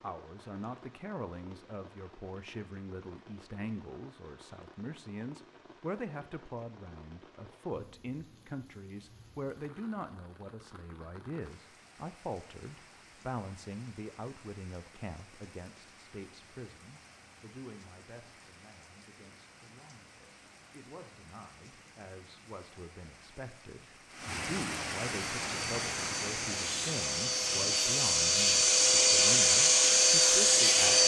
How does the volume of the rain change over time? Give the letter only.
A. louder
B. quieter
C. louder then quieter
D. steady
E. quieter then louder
A.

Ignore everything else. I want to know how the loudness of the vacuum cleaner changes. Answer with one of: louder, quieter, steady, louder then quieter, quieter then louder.
louder.